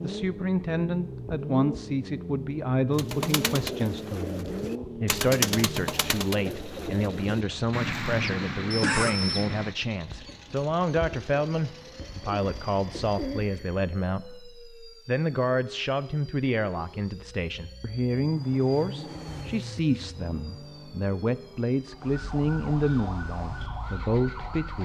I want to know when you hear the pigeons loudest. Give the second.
5 s.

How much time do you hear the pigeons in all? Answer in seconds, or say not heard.
11 s.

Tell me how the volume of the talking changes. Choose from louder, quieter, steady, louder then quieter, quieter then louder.
steady.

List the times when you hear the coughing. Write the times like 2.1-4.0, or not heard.
8.7-9.4.